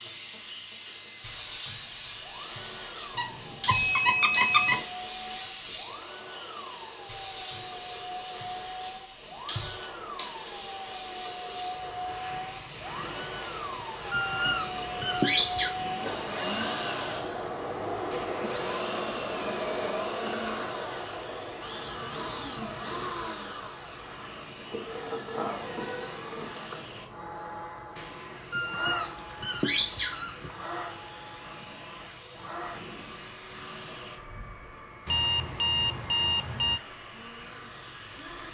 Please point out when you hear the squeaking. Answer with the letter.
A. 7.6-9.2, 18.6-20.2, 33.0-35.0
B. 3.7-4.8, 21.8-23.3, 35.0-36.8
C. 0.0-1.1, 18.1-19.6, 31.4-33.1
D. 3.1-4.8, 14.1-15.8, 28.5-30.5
D.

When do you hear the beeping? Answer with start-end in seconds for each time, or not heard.
3.7-4.8, 21.8-23.3, 35.0-36.8.